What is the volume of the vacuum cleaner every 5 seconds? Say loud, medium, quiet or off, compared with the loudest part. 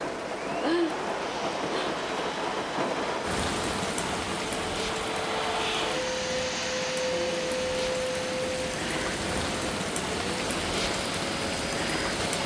medium, loud, medium.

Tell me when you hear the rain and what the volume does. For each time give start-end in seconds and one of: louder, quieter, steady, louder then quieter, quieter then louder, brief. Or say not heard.
0.0-12.4 quieter then louder.